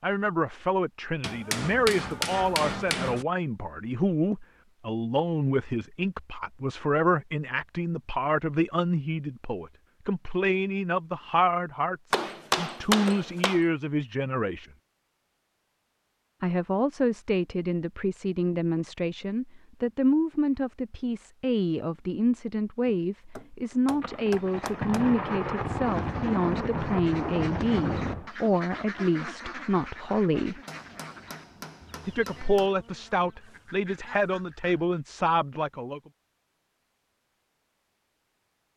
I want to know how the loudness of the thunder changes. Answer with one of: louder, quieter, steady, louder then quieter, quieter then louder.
steady.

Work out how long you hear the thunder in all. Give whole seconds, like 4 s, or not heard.
4 s.